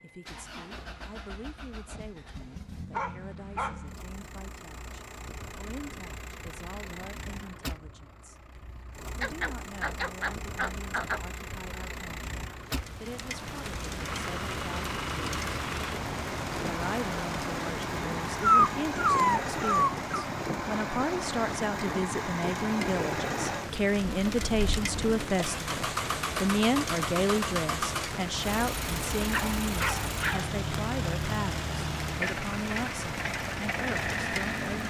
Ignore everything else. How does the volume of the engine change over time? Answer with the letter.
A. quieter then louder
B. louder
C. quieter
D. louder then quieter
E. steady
B.